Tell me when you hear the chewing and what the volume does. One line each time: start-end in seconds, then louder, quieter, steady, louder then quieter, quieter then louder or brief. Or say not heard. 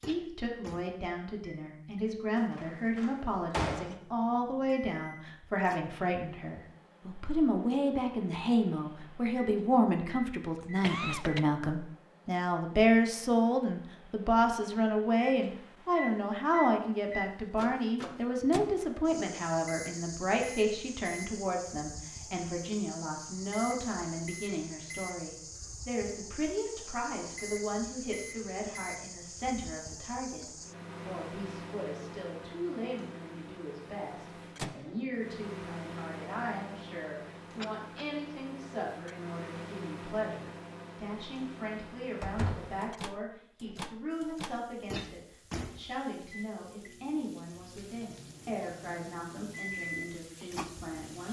not heard.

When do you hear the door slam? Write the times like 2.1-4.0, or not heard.
2.4-4.0, 42.2-42.8.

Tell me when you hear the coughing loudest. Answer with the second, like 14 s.
11 s.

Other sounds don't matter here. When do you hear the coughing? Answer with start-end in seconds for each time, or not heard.
10.6-11.4, 37.6-38.1.